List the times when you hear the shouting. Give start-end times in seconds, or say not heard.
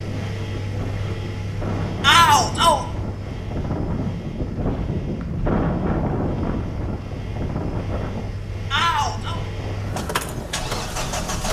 2.0-2.9, 8.7-9.4.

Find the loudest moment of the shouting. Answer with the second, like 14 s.
2 s.